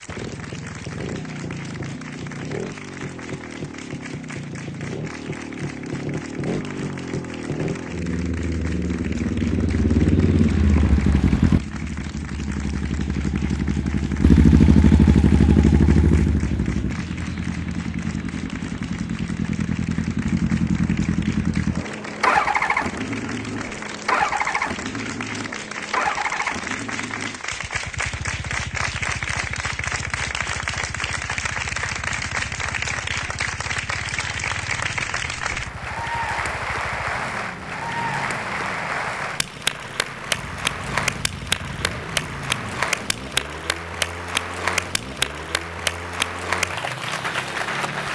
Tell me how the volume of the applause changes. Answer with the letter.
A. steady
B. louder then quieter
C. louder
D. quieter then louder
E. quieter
C.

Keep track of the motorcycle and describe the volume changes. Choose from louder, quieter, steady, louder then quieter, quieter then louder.
louder then quieter.